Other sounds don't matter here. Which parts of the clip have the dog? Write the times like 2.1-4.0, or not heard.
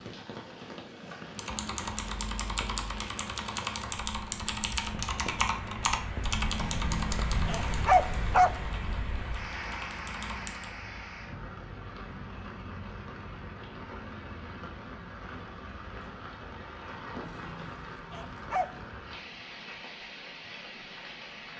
6.6-8.5, 17.2-18.9.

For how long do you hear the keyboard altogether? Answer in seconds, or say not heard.
9 s.